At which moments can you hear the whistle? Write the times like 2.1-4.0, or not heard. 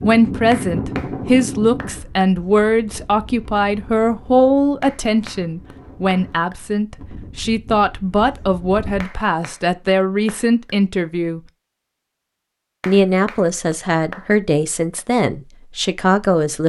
not heard.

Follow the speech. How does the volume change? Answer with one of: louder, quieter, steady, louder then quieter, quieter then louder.
steady.